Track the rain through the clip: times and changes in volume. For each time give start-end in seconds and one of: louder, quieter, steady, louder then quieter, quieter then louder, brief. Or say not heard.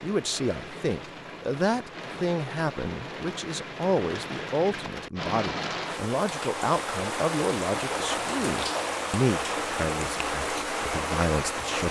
0.0-11.8 louder.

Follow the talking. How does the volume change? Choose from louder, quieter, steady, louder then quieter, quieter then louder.
steady.